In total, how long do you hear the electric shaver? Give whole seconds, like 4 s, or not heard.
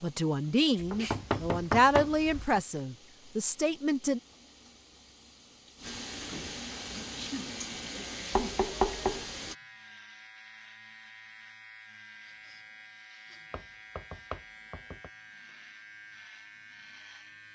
12 s.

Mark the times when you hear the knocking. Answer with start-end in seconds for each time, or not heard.
0.9-2.6, 8.3-9.2, 13.5-15.1.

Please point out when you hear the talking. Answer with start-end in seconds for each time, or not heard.
0.0-4.2.